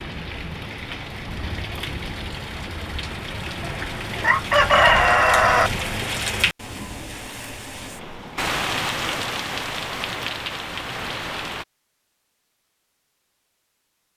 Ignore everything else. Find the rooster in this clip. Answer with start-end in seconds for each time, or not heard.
4.2-5.7.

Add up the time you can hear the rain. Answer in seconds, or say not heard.
12 s.